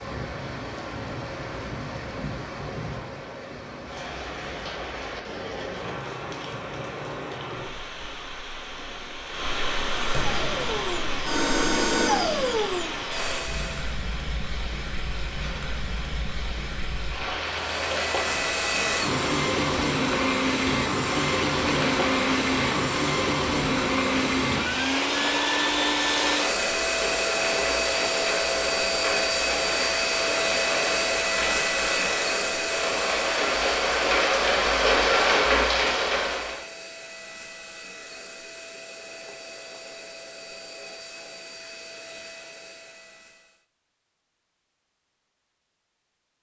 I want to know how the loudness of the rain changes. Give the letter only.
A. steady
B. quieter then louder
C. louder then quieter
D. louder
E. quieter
D.